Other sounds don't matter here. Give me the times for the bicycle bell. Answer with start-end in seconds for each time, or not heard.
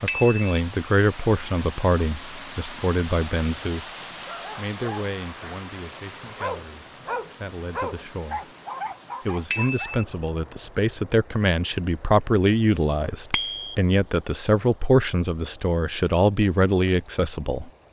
0.1-0.6, 9.5-10.1, 13.3-13.8.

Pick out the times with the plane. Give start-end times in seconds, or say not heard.
not heard.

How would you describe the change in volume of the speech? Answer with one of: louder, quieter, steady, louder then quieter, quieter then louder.
quieter then louder.